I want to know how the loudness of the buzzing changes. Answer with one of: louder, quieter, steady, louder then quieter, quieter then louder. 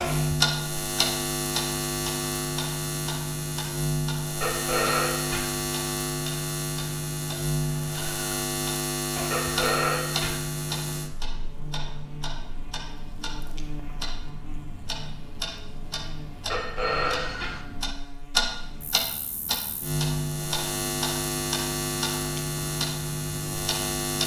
quieter then louder.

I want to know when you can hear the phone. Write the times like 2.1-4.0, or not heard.
4.4-5.5, 9.3-10.3, 16.5-17.5.